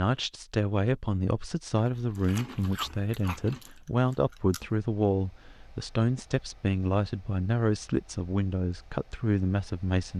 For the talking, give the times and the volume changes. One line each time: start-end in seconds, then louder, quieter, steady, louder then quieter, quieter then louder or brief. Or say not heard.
0.0-10.1 steady.